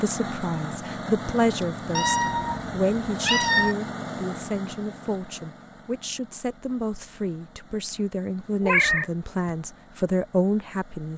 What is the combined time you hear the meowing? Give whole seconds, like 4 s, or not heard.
3 s.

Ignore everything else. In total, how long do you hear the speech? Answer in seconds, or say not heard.
11 s.